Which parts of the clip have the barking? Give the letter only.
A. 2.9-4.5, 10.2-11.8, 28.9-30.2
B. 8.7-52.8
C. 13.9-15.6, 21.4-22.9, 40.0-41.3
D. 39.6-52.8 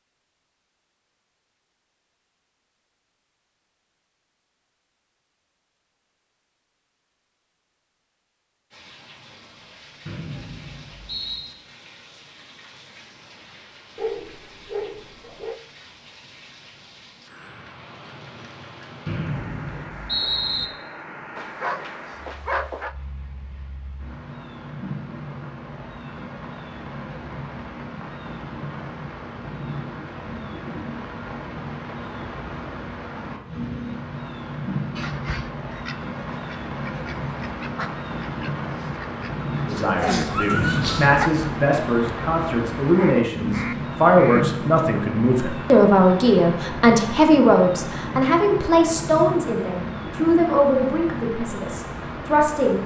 C.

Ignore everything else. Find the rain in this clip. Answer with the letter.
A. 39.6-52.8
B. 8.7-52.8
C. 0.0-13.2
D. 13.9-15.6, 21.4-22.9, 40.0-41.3
B.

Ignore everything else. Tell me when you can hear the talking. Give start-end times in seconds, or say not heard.
39.6-52.8.